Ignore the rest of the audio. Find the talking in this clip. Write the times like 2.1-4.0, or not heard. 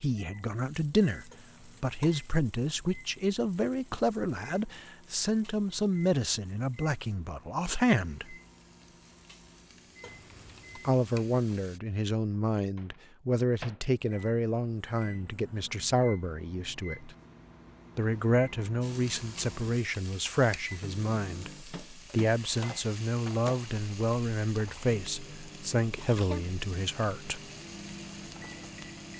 0.0-8.3, 10.8-17.1, 17.9-27.4.